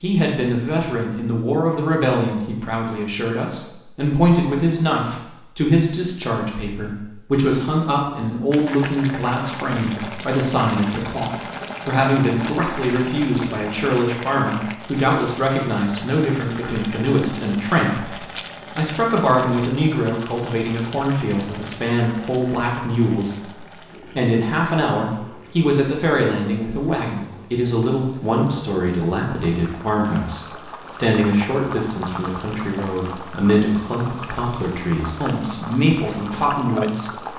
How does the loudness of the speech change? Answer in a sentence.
The loudness of the speech stays about the same.